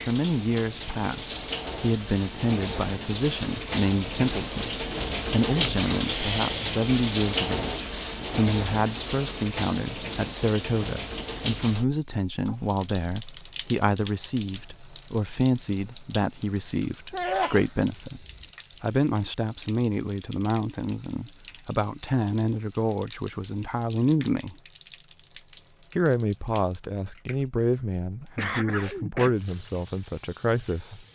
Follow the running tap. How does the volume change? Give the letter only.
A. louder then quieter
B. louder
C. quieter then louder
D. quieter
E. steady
D.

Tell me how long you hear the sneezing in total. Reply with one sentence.
You can hear the sneezing for 4 seconds altogether.